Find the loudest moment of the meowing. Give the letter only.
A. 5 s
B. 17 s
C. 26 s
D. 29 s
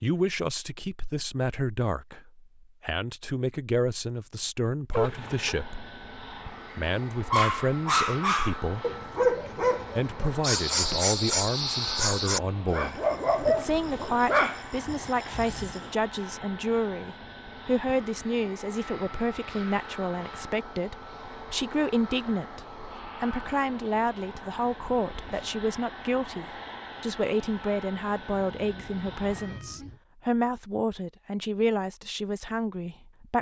A.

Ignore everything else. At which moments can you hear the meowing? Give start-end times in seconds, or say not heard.
4.9-5.5, 28.2-30.0.